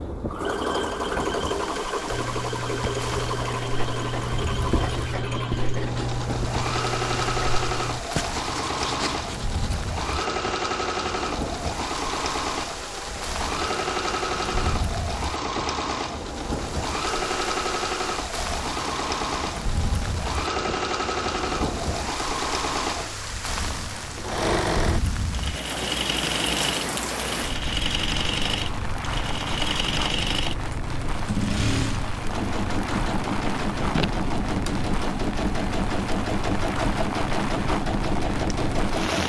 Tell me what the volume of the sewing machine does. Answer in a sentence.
The volume of the sewing machine stays about the same.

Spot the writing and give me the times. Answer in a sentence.
The writing can be heard from 2.1 to 9.8 s.